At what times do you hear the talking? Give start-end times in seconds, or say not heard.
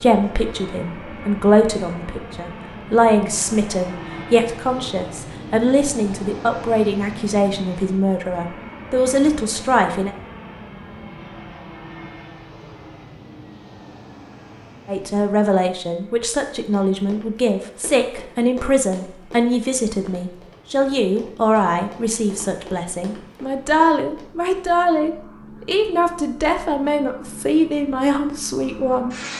0.0-10.1, 14.8-29.1.